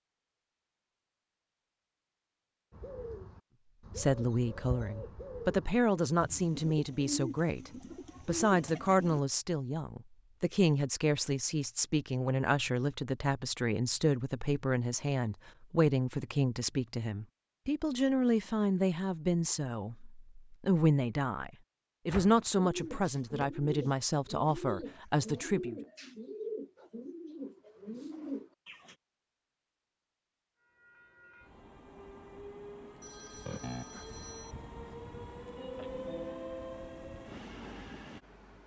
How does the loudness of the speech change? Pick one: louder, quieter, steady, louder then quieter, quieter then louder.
steady.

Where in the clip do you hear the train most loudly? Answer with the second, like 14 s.
36 s.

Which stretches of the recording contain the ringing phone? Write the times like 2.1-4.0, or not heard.
33.0-34.5.